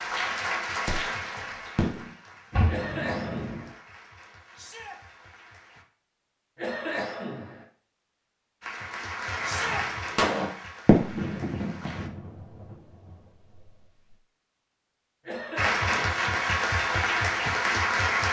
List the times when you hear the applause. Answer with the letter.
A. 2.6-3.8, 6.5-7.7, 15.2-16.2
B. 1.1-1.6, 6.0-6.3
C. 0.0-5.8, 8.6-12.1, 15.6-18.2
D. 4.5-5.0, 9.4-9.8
C.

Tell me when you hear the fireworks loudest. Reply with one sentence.
The loudest moment of the fireworks is at 11 seconds.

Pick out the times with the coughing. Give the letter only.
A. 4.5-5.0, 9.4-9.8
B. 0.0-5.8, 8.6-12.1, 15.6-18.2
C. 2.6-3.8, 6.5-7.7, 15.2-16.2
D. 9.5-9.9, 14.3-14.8
C.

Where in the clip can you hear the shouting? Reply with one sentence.
The shouting can be heard from 4.5 to 5.0 s and from 9.4 to 9.8 s.